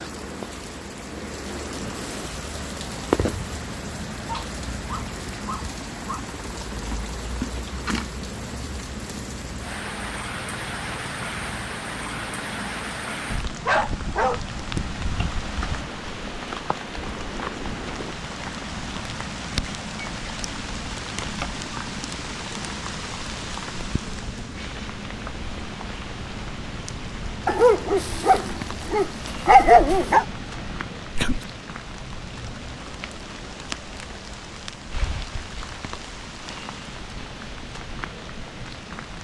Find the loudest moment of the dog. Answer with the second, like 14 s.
30 s.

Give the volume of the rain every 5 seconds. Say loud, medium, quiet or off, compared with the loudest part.
loud, loud, loud, loud, loud, medium, medium, medium.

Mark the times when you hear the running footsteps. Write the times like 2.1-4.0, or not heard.
not heard.